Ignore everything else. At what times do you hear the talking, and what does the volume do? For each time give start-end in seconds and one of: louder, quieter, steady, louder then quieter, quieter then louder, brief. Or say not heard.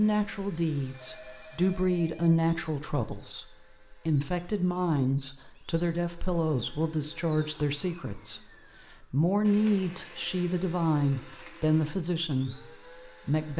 0.0-13.5 steady.